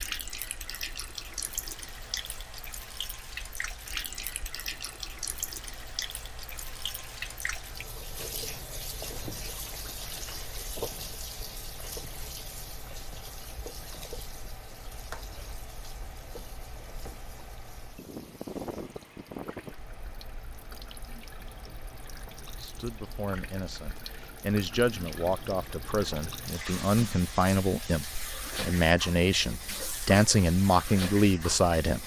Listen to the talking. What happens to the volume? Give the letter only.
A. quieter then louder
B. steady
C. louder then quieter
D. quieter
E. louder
E.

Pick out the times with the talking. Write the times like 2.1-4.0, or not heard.
22.6-32.0.